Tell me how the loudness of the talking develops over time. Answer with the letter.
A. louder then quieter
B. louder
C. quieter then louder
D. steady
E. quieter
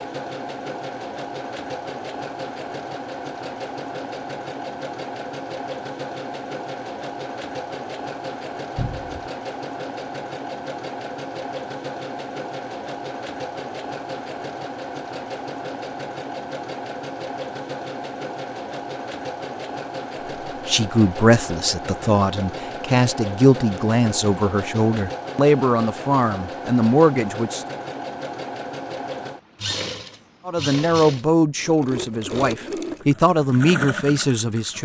D.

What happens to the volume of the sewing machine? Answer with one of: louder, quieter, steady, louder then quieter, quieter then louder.
steady.